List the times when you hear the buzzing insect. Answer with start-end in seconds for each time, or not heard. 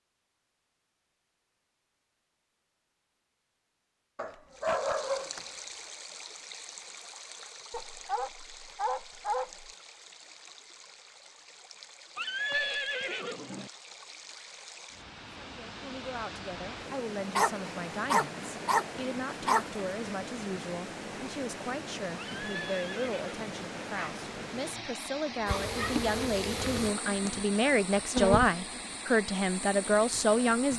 25.4-30.7.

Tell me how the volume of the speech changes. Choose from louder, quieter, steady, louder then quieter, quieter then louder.
louder.